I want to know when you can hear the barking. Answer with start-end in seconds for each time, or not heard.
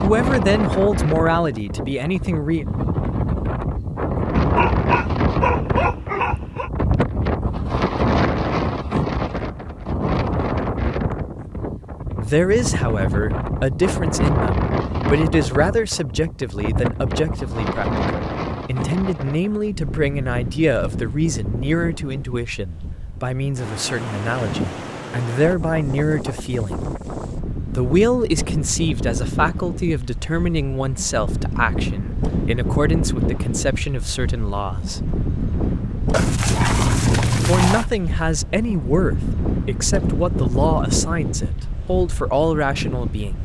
4.3-6.7, 36.1-37.9.